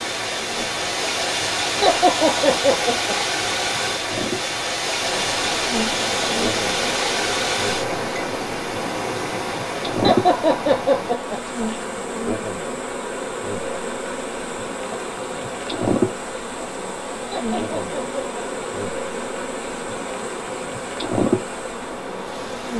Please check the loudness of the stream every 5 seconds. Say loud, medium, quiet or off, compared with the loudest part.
loud, loud, quiet, quiet, quiet.